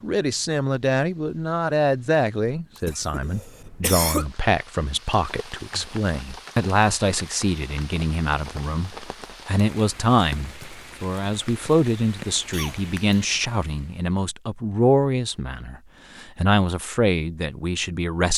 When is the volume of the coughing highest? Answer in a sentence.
The volume of the coughing peaks at 4 seconds.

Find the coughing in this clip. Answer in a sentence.
The coughing can be heard from 2.9 to 4.3 s and from 12.5 to 13.3 s.